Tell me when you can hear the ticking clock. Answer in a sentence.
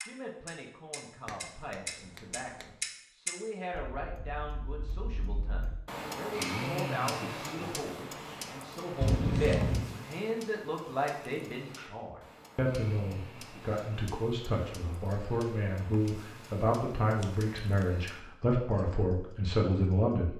You can hear the ticking clock from 0.0 to 20.1 s.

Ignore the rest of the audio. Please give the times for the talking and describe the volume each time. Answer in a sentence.
The talking can be heard from 0.0 to 20.3 s, getting louder.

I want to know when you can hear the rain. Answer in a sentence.
You can't hear the rain here.